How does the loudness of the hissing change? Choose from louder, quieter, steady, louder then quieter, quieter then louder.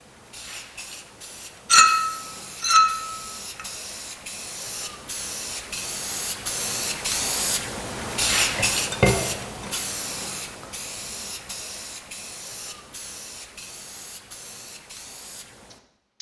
louder then quieter.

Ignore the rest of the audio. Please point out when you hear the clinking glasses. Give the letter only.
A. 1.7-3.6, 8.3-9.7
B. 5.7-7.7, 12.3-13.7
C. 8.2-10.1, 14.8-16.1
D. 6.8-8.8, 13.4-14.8
A.